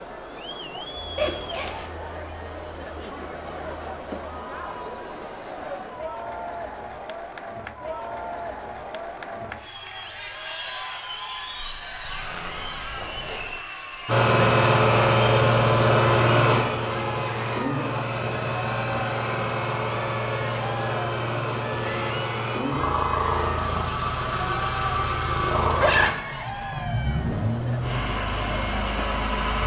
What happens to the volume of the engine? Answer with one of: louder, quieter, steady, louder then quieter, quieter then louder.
quieter.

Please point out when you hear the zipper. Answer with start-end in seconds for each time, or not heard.
1.1-1.9, 11.6-13.6, 25.7-26.8.